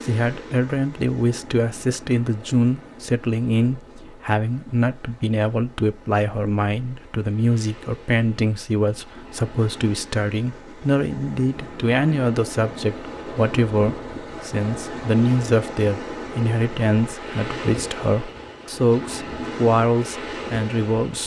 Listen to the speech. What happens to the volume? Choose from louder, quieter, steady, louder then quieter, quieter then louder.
steady.